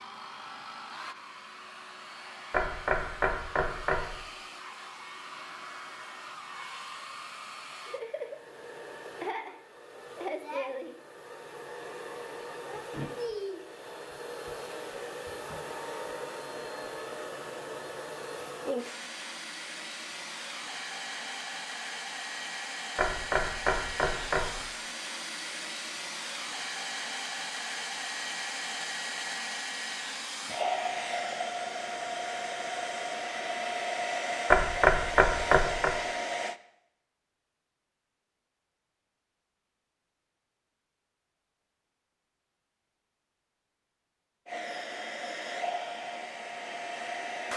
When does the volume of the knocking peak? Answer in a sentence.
The volume of the knocking peaks at 35 seconds.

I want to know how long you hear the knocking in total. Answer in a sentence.
The knocking can be heard for 5 seconds in total.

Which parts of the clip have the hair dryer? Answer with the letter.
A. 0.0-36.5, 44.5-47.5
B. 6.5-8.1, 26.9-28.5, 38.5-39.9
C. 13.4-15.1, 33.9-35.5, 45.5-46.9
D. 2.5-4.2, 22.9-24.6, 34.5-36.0
A.